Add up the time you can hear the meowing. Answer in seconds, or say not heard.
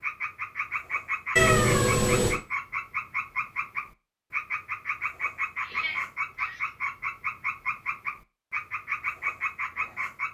2 s.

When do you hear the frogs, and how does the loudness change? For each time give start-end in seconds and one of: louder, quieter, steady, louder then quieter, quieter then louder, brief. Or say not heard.
0.0-10.2 steady.